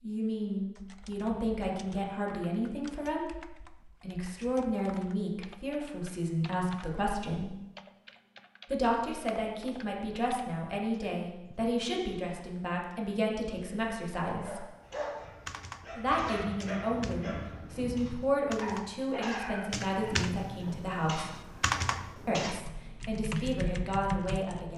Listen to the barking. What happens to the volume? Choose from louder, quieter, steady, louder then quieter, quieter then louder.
steady.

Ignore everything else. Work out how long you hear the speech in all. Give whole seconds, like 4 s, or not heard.
21 s.